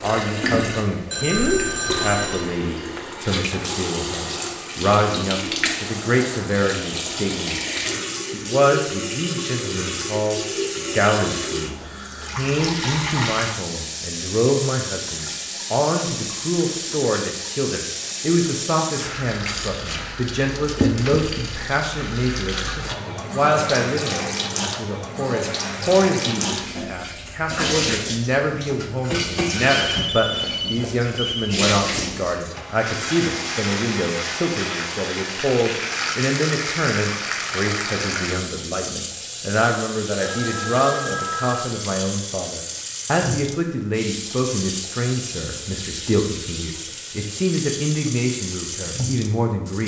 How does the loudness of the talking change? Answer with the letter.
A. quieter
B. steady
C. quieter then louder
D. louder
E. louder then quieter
B.